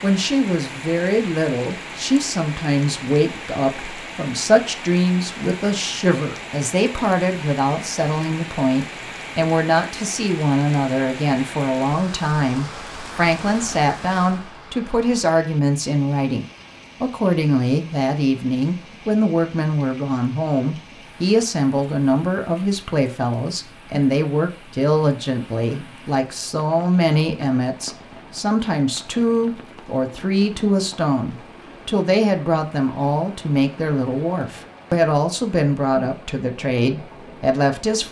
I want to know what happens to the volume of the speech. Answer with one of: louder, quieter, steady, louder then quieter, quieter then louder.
steady.